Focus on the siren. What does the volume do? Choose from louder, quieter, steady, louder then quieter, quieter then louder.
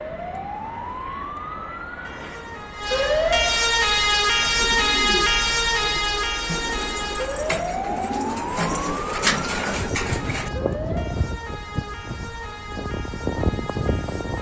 louder then quieter.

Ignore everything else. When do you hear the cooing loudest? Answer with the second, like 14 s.
9 s.